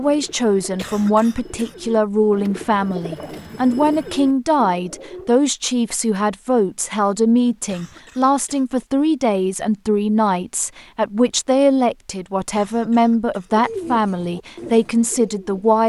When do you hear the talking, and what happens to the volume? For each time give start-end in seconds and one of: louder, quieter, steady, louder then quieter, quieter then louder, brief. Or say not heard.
0.0-15.8 steady.